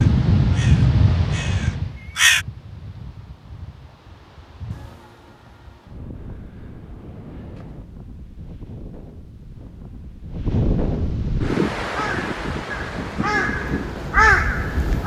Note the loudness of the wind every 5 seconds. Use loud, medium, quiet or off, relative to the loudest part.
loud, quiet, loud.